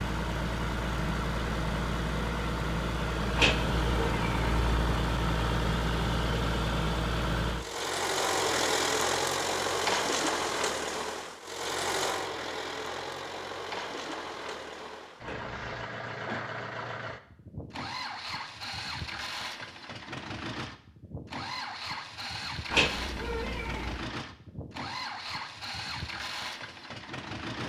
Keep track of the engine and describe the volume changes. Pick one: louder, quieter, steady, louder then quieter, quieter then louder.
quieter.